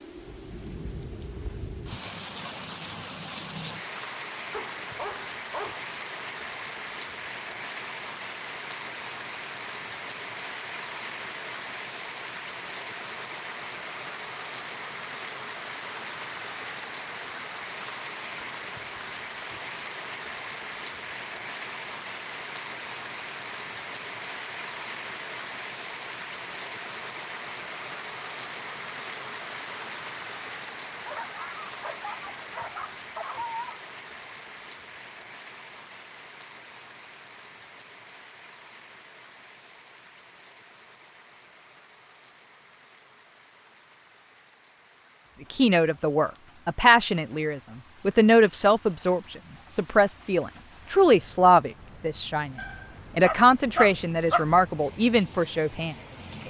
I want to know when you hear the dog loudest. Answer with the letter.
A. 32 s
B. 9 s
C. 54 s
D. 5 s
C.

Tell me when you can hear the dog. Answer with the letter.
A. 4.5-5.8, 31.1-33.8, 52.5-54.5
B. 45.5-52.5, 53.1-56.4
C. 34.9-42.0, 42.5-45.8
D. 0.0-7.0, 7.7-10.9
A.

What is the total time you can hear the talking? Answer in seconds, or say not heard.
10 s.